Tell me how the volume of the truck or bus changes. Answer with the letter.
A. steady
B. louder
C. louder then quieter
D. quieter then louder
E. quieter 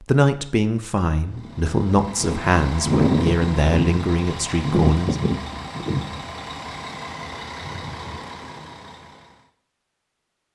E.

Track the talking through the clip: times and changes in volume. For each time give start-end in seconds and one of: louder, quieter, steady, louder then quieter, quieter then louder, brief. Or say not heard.
0.0-5.2 steady.